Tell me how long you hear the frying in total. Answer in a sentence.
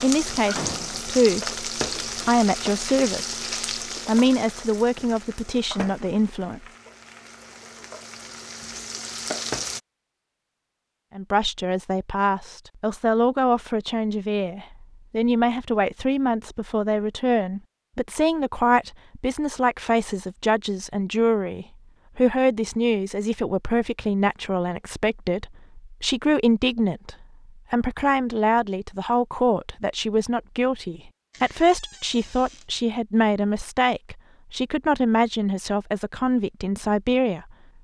The frying can be heard for 10 seconds in total.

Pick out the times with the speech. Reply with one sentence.
The speech can be heard from 0.0 to 3.4 s, from 4.0 to 6.7 s and from 11.2 to 37.5 s.